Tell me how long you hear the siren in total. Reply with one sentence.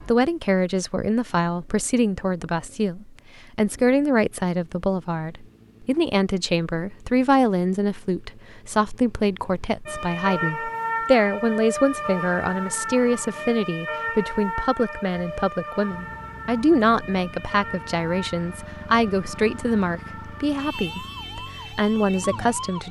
You can hear the siren for 13 seconds altogether.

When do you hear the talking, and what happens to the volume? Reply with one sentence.
You can hear the talking from 0.0 to 22.8 s, at a steady volume.